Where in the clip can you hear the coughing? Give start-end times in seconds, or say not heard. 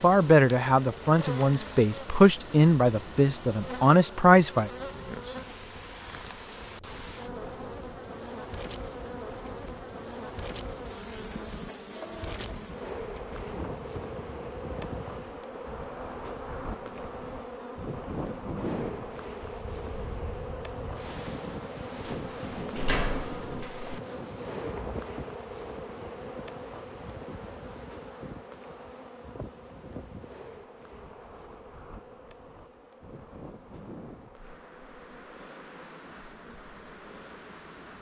not heard.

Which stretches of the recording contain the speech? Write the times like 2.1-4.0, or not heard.
0.0-4.7.